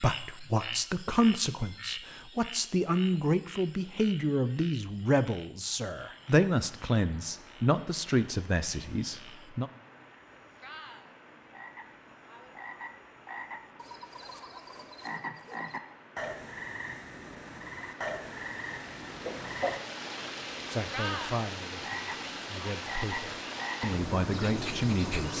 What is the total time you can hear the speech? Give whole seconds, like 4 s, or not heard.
14 s.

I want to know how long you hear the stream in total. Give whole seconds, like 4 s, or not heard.
19 s.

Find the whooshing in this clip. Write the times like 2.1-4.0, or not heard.
19.2-19.9.